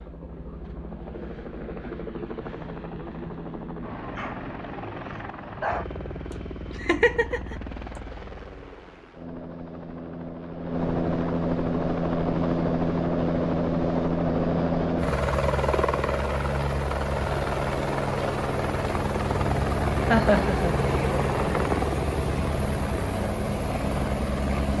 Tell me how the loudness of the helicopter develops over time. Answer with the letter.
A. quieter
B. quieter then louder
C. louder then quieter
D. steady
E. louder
E.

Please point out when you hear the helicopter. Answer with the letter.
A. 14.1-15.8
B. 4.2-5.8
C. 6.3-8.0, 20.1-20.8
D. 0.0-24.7
D.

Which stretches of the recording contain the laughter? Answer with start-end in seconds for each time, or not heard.
6.3-8.0, 20.1-20.8.